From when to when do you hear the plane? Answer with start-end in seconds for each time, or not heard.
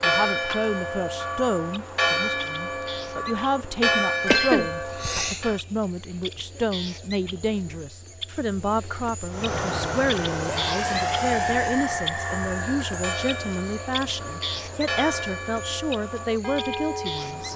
9.3-15.4.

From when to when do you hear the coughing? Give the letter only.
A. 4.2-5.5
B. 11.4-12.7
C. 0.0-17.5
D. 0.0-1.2
A.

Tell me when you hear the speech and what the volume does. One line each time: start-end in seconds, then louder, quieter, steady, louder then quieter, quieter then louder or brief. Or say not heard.
0.0-17.5 steady.